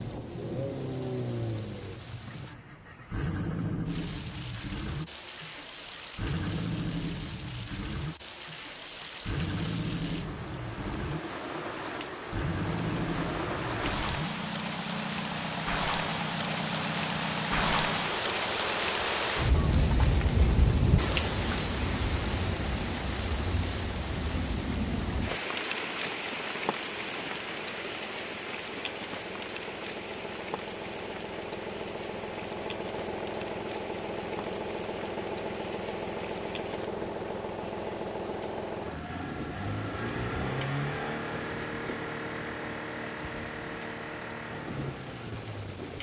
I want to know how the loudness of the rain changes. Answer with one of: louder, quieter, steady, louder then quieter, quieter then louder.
louder then quieter.